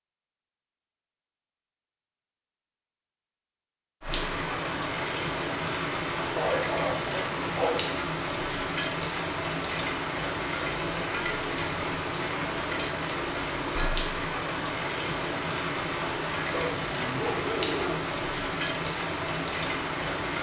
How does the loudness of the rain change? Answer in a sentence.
The loudness of the rain stays about the same.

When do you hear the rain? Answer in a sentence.
You can hear the rain from 4.0 to 20.3 s.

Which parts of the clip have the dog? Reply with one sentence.
You can hear the dog from 6.3 to 8.0 s and from 16.5 to 18.0 s.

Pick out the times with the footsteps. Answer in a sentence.
You can't hear the footsteps here.